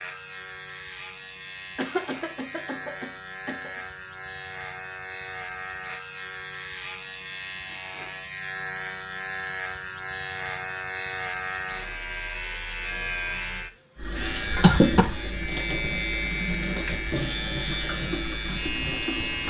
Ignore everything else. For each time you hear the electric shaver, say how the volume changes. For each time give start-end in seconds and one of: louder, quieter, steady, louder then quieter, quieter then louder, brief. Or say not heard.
0.0-19.4 louder.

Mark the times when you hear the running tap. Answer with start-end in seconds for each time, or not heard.
13.9-19.4.